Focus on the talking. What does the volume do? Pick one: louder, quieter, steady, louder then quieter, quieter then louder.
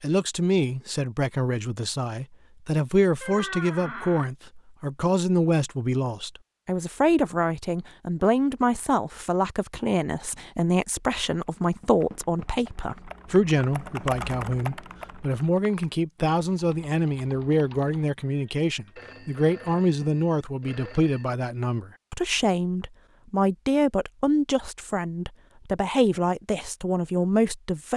steady.